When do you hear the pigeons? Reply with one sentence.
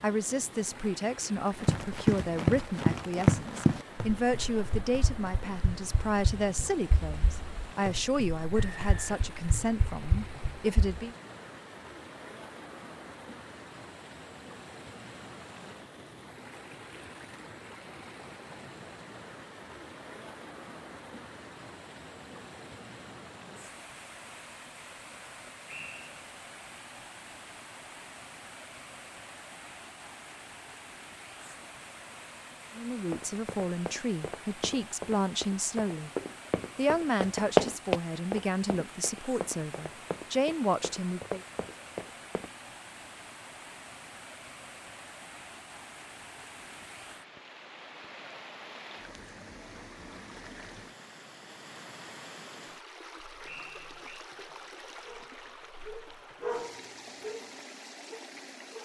The pigeons can't be heard in this clip.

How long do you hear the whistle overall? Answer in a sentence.
The whistle can be heard for 2 seconds in total.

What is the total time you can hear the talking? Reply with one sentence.
The talking can be heard for 19 seconds in total.